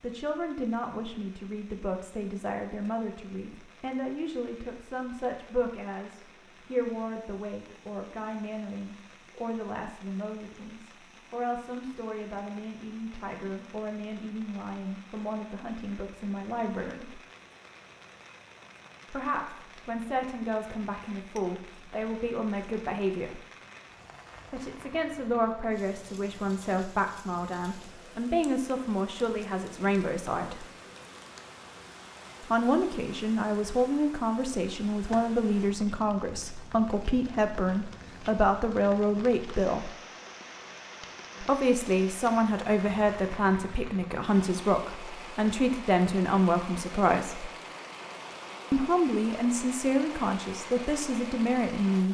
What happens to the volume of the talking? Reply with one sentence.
The loudness of the talking goes up.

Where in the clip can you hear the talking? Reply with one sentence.
The talking can be heard from 0.0 to 17.2 s, from 19.1 to 23.4 s, from 24.5 to 30.6 s, from 32.4 to 40.0 s, from 41.4 to 47.5 s and from 48.7 to 52.0 s.